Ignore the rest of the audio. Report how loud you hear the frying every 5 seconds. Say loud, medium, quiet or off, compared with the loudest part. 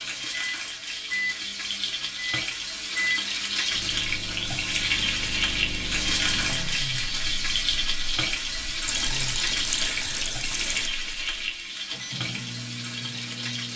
loud, loud, medium.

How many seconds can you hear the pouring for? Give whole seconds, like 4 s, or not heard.
2 s.